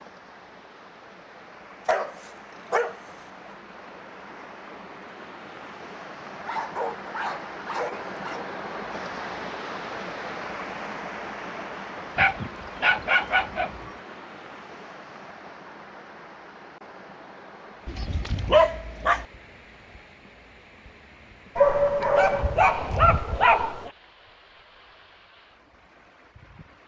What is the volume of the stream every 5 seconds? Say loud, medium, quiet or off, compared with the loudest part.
medium, loud, loud, medium, quiet, quiet.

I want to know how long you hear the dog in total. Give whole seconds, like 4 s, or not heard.
9 s.